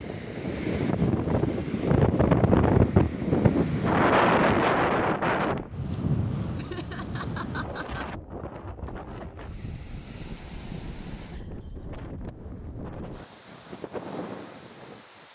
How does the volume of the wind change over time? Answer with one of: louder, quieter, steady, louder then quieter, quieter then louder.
quieter.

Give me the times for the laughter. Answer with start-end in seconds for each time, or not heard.
6.5-8.1.